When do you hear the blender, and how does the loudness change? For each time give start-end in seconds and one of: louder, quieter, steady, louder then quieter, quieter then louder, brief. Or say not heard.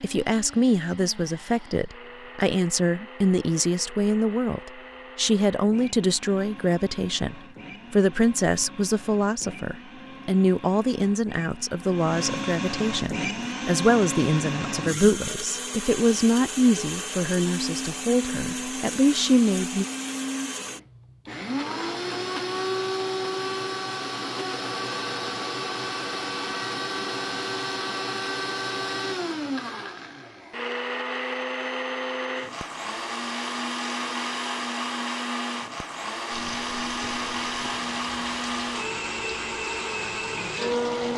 0.0-41.1 louder.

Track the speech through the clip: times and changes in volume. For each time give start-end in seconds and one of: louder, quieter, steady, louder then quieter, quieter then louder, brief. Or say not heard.
0.0-19.9 steady.